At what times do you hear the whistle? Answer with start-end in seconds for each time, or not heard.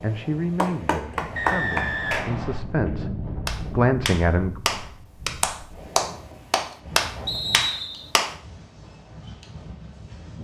1.4-2.6, 7.2-8.1.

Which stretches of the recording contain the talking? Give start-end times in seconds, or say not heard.
0.0-4.5.